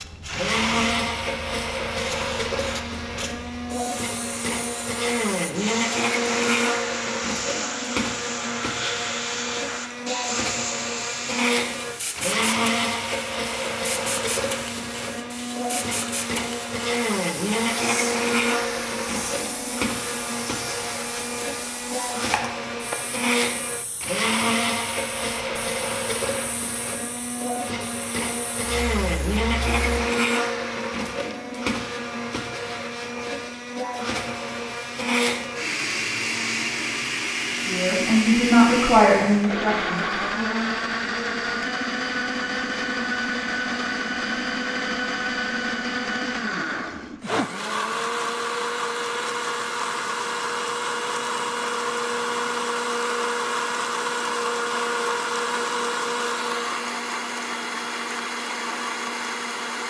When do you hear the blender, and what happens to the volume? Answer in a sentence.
You can hear the blender from 0.0 to 59.8 s, at a steady volume.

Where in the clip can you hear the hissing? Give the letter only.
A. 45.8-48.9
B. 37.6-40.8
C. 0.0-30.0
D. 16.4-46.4
C.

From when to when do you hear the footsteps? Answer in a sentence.
The footsteps can't be heard in this clip.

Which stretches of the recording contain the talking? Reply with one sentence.
You can hear the talking from 37.6 to 40.8 s.